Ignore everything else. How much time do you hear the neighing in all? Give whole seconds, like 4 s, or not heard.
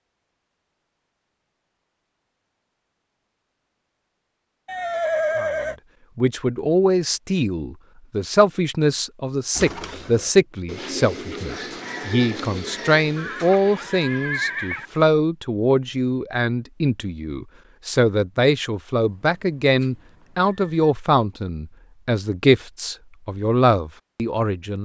4 s.